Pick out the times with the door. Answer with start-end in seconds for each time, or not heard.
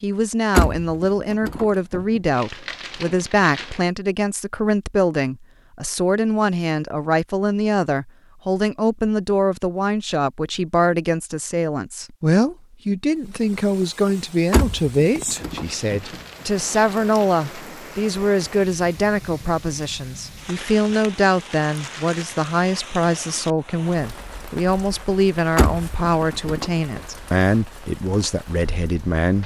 0.6-2.2, 14.5-16.2, 25.6-27.0.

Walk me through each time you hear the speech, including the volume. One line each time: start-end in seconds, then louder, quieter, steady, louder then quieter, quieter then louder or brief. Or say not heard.
0.0-29.4 steady.